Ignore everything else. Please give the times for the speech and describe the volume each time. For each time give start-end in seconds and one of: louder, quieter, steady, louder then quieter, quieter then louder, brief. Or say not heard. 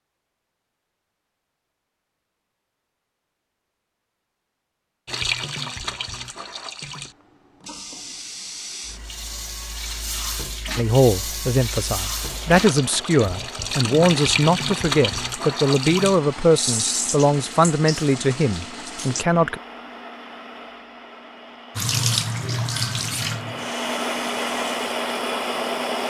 10.8-19.6 steady.